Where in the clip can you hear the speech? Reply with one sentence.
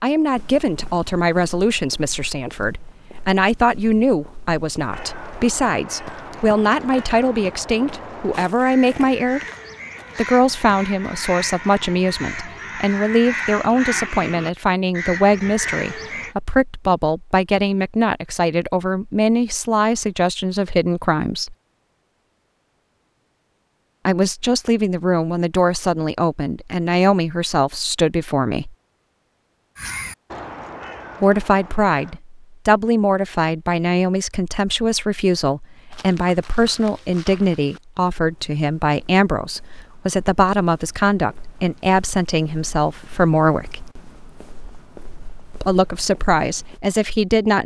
You can hear the speech from 0.0 to 9.4 s, from 10.2 to 21.6 s, from 24.1 to 28.8 s, from 31.2 to 43.9 s and from 45.5 to 47.6 s.